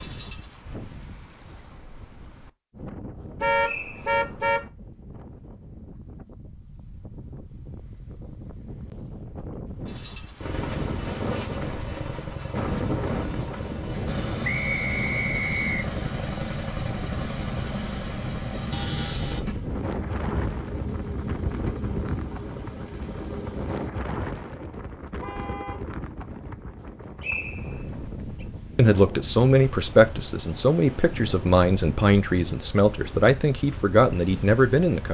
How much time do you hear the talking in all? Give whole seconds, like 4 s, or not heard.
6 s.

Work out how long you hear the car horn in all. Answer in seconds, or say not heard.
2 s.